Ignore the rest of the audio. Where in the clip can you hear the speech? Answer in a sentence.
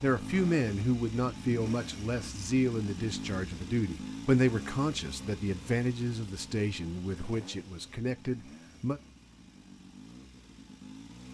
You can hear the speech from 0.0 to 9.0 s.